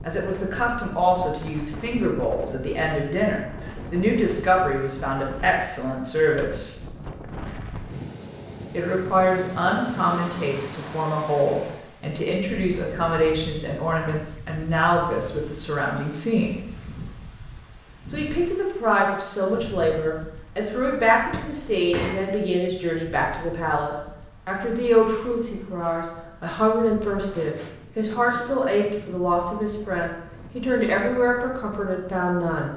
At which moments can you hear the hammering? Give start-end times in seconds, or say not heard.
21.3-22.3.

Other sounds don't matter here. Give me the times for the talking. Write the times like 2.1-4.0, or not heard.
0.0-6.8, 8.7-16.6, 18.1-32.7.